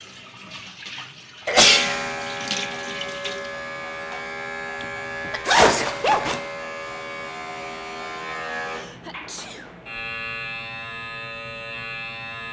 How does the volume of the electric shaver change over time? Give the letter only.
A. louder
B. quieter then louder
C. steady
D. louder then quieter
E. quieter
C.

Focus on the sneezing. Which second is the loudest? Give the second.
2 s.